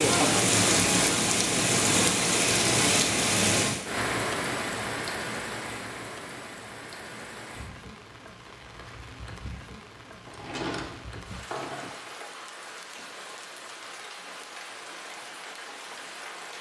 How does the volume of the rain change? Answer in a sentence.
The loudness of the rain goes down.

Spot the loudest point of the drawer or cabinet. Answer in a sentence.
The loudest moment of the drawer or cabinet is at 11 seconds.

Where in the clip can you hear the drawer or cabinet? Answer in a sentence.
You can hear the drawer or cabinet from 10.2 to 12.1 s.